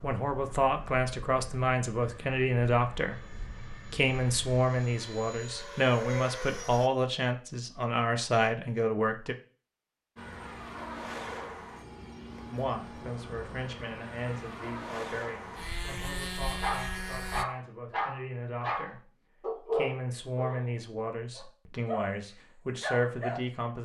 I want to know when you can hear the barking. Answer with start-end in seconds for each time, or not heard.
16.6-23.4.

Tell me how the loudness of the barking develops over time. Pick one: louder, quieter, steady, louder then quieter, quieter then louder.
quieter then louder.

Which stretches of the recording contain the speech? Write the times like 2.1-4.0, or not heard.
0.0-9.3, 12.5-23.8.